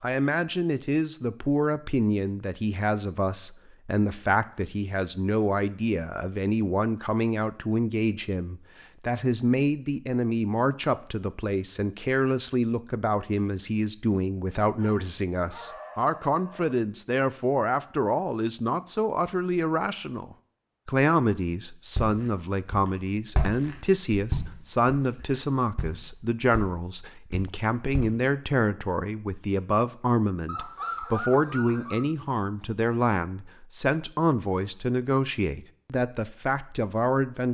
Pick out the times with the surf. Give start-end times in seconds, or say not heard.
not heard.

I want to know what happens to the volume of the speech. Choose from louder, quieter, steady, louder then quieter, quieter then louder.
steady.